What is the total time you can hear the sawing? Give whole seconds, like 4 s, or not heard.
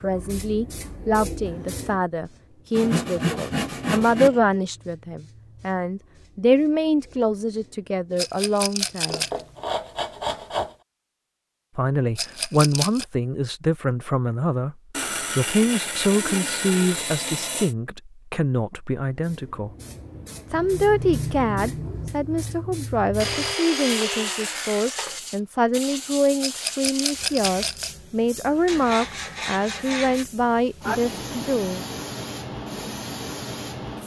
10 s.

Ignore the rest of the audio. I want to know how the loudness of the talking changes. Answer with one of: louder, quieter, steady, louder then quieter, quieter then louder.
steady.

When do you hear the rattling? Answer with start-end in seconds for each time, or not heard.
8.2-9.4, 12.2-13.1, 26.4-27.9.